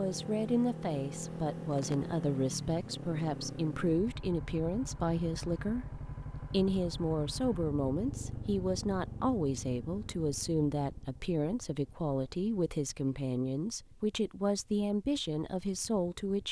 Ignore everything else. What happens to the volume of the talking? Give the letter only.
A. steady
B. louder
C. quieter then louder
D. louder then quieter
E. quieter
A.